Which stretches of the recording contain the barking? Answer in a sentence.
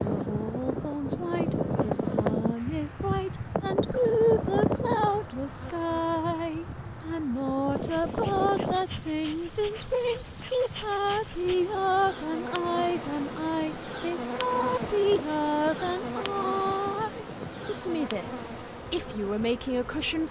The barking can't be heard in this clip.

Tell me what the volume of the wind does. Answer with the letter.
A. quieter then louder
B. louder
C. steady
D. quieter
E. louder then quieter
D.